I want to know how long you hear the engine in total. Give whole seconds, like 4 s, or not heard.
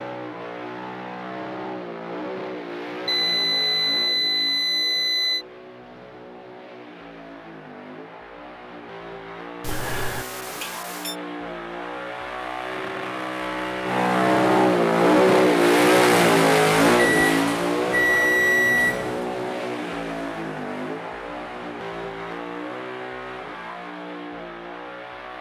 25 s.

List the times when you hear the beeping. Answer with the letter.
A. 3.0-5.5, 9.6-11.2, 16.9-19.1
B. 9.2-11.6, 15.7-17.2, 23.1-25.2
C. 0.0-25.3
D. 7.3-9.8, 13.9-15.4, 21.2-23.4
A.